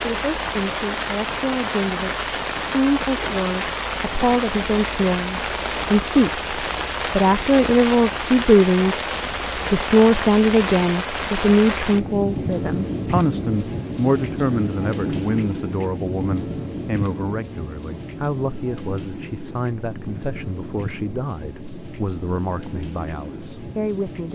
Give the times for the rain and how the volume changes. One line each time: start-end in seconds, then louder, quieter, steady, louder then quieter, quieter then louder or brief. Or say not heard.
0.0-24.3 quieter.